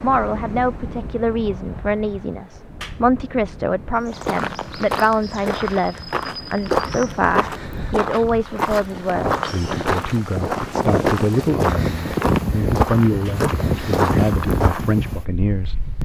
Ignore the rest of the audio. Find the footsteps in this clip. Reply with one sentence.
You can hear the footsteps from 4.1 to 14.8 s.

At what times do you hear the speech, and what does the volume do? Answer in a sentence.
You can hear the speech from 0.0 to 15.8 s, at a steady volume.